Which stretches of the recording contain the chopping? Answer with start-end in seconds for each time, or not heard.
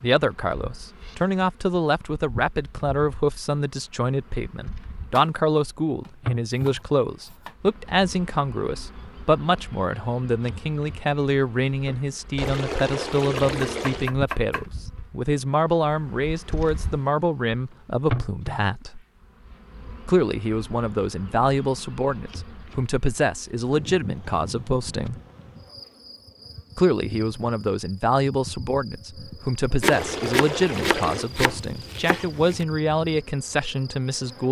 5.2-7.5, 13.4-14.8, 29.8-32.6.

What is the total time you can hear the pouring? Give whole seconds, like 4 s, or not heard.
3 s.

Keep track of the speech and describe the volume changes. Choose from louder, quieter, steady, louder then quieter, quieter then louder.
steady.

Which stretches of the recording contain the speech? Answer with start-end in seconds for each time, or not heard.
0.0-19.0, 20.1-25.1, 26.8-34.4.